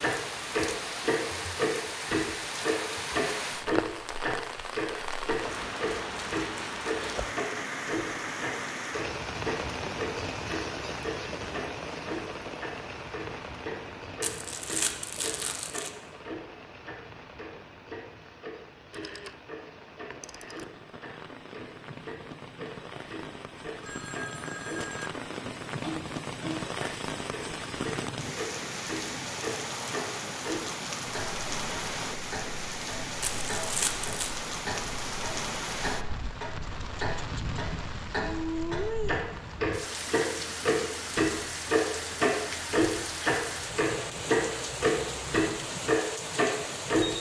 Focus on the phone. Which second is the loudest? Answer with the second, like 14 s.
25 s.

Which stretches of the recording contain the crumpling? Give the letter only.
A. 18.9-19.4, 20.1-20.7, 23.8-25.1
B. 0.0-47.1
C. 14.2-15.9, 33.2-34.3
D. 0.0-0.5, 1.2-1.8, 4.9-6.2
C.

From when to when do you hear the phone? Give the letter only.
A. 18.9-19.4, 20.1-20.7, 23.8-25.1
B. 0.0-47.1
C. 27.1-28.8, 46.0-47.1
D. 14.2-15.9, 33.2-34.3
A.